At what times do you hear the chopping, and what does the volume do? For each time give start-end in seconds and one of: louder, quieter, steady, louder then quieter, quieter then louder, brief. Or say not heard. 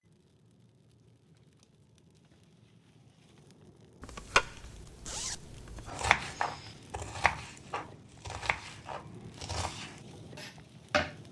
5.8-11.2 quieter.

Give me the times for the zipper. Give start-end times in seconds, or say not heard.
4.0-5.9.